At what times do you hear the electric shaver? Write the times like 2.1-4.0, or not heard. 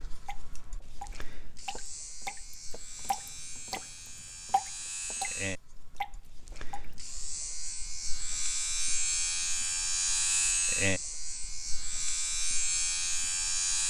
0.0-13.8.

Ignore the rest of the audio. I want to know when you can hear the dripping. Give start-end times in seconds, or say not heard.
0.2-5.3, 6.0-7.0.